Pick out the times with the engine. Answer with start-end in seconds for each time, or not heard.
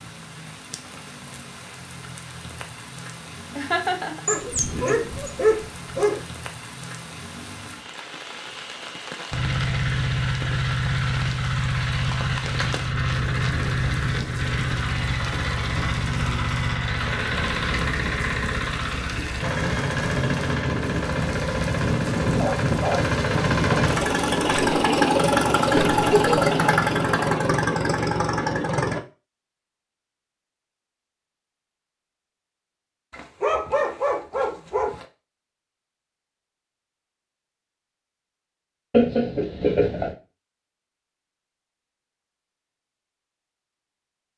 9.3-29.0.